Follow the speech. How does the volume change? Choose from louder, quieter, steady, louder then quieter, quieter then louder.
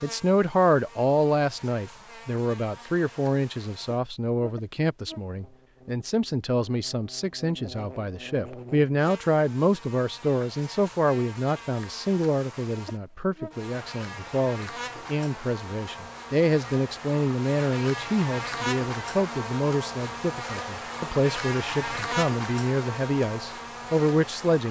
steady.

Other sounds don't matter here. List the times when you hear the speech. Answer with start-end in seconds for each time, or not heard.
0.0-24.6.